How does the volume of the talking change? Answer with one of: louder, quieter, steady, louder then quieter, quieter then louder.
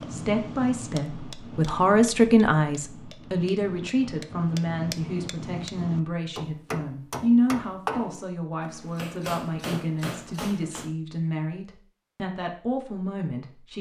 quieter.